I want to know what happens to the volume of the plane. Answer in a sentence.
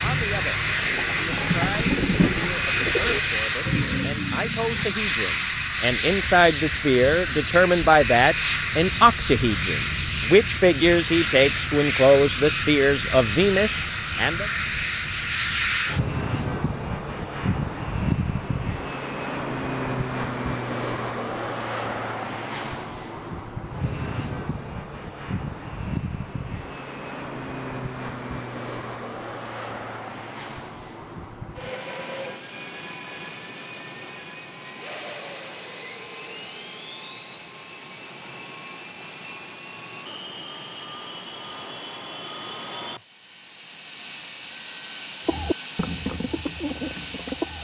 The loudness of the plane goes down.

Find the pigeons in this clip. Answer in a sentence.
You can hear the pigeons from 0.0 to 5.0 s and from 45.2 to 47.5 s.